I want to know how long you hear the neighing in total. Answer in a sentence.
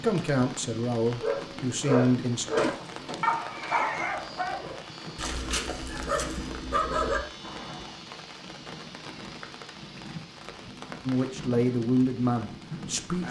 The neighing can be heard for 2 seconds in total.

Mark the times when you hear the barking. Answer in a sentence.
The barking can be heard from 1.2 to 7.9 s.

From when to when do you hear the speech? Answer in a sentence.
You can hear the speech from 0.0 to 2.5 s and from 11.1 to 13.2 s.